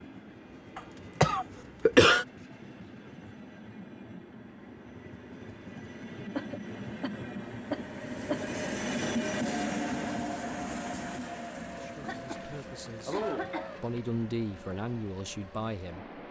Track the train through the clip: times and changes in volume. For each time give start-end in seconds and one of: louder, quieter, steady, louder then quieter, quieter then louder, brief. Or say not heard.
0.0-16.2 louder then quieter.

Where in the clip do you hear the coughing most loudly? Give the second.
2 s.